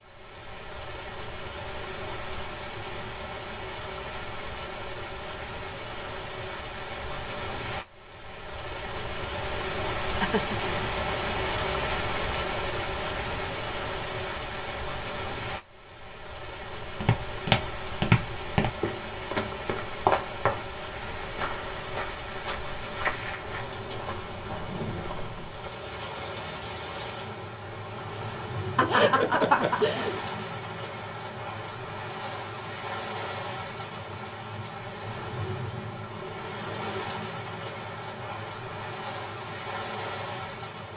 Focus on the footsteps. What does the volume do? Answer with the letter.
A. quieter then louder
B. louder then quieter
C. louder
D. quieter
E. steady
D.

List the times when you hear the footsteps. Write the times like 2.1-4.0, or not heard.
17.0-25.7.